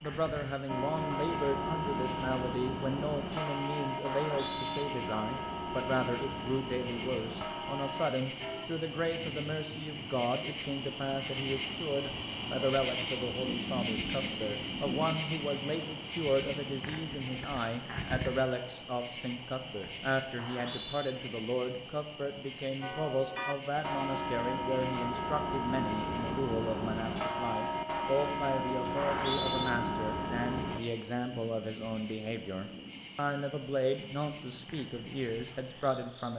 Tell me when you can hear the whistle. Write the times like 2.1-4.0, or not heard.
4.2-4.8, 20.4-21.1, 28.9-29.7.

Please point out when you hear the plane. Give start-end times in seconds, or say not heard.
not heard.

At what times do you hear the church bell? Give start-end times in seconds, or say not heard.
0.7-8.7, 22.8-30.8.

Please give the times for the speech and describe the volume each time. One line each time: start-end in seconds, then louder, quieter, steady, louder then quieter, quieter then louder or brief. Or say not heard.
0.0-36.3 steady.